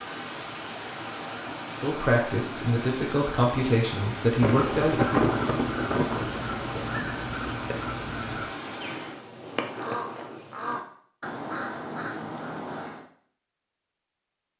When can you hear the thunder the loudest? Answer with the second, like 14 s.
5 s.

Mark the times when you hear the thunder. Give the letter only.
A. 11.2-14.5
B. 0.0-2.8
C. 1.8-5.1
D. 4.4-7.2
D.